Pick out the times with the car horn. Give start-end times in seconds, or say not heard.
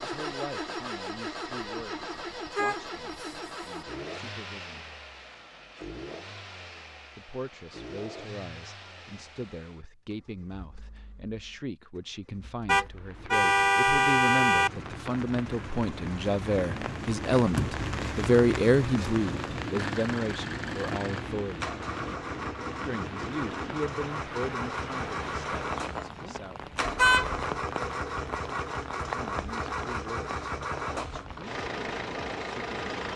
2.1-3.8, 12.7-14.7, 26.9-27.4.